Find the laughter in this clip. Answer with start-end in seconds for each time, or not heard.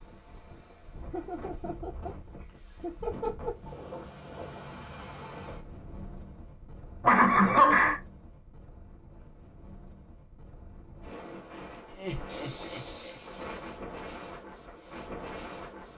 1.1-3.8, 7.0-8.0, 11.9-13.2.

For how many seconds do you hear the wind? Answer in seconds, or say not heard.
16 s.